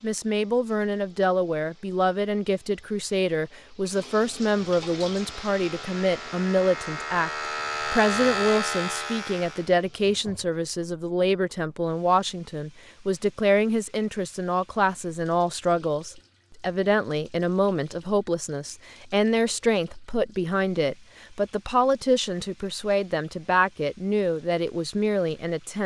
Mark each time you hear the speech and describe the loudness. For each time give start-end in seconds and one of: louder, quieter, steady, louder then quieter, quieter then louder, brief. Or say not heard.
0.0-25.8 steady.